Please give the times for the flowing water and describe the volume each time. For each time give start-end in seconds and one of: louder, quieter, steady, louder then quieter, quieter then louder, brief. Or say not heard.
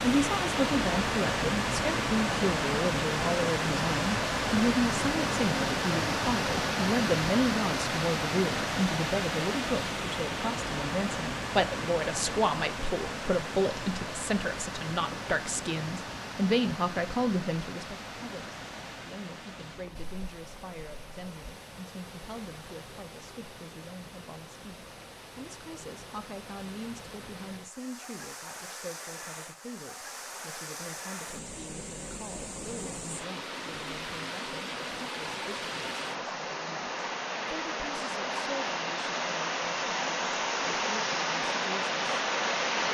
0.0-42.8 quieter then louder.